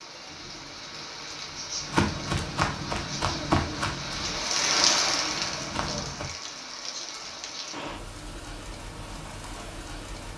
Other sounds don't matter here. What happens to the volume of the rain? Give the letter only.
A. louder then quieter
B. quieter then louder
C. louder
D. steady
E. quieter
A.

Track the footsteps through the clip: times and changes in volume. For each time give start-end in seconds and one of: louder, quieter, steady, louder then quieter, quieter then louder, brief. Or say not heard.
1.8-6.2 quieter then louder.